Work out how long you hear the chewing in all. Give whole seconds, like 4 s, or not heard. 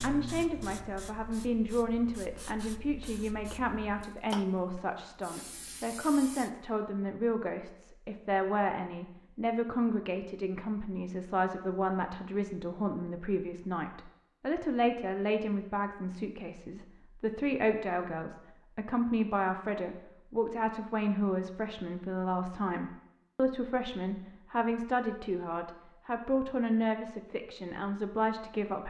not heard.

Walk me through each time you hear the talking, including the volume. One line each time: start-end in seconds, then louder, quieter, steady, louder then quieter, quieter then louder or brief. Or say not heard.
0.0-28.8 steady.